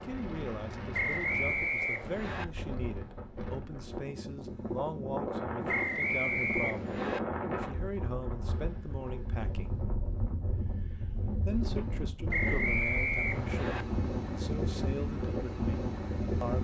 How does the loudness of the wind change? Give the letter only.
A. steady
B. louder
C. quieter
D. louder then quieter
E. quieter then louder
B.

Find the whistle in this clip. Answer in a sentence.
You can hear the whistle from 0.9 to 2.5 s, from 5.7 to 7.2 s and from 12.3 to 13.8 s.